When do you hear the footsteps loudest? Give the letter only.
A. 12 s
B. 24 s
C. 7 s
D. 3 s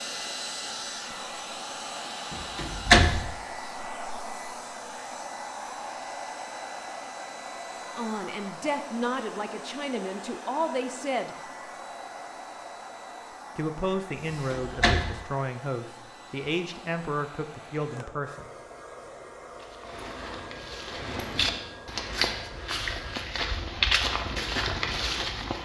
B.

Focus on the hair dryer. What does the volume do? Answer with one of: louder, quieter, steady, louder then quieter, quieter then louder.
quieter.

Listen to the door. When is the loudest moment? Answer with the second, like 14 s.
3 s.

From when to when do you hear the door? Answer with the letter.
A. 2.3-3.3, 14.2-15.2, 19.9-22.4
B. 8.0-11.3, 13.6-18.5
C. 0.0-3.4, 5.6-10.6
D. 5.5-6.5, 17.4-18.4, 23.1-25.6
A.